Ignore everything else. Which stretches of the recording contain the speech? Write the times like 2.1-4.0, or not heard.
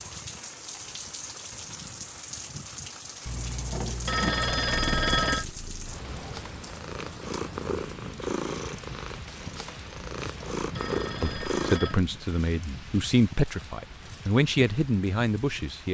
11.2-15.8.